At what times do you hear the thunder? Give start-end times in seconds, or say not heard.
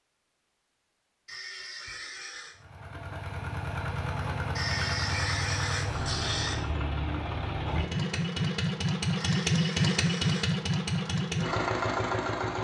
not heard.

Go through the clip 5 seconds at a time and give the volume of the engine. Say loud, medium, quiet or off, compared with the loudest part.
medium, loud, loud.